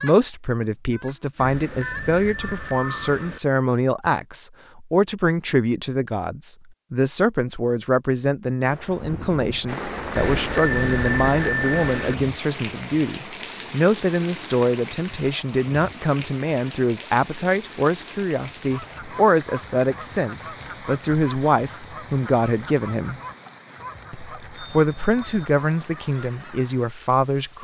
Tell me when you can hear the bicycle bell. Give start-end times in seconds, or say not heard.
1.4-3.4, 10.2-12.2, 24.4-25.4.